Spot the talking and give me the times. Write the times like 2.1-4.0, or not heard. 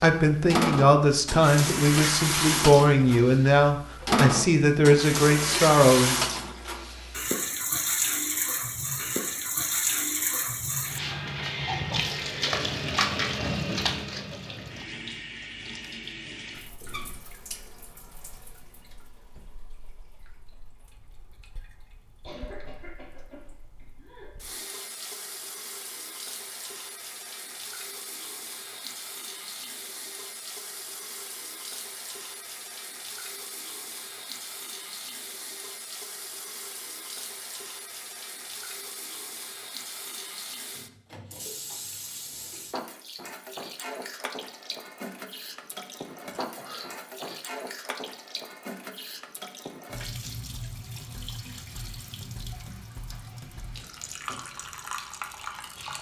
0.0-6.2.